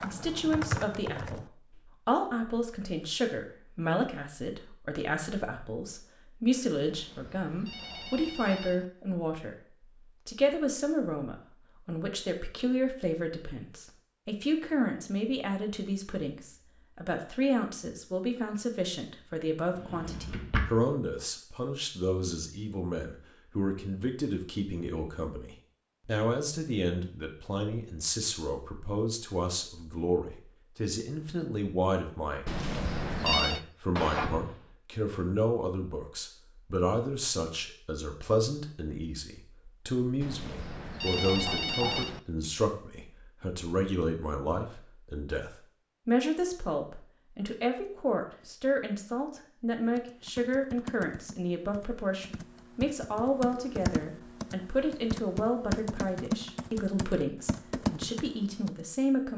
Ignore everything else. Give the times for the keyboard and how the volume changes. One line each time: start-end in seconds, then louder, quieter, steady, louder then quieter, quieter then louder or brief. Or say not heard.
0.0-1.9 brief
50.0-58.7 louder.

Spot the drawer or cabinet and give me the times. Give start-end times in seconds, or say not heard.
19.8-20.6, 34.0-34.6.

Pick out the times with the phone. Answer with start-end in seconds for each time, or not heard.
6.8-8.8, 32.5-33.6, 40.2-42.2.